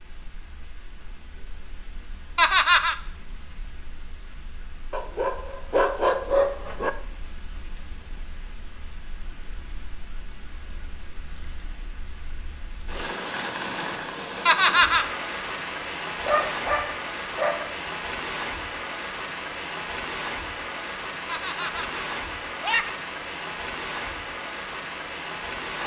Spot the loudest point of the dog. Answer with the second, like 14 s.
6 s.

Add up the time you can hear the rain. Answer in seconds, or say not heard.
26 s.